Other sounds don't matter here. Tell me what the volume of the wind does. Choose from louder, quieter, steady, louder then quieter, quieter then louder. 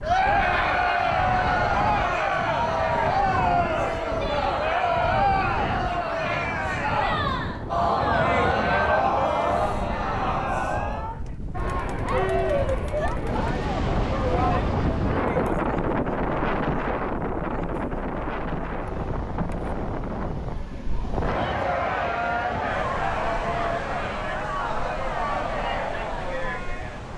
louder then quieter.